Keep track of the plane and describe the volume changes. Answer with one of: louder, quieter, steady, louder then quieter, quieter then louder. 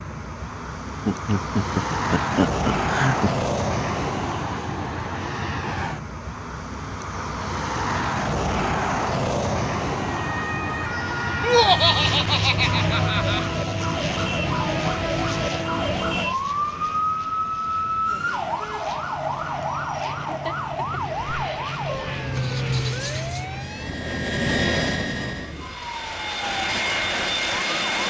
quieter then louder.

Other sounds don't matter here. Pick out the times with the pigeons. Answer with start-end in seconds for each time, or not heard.
not heard.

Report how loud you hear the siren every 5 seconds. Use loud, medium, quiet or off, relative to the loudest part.
off, off, loud, loud, medium, medium.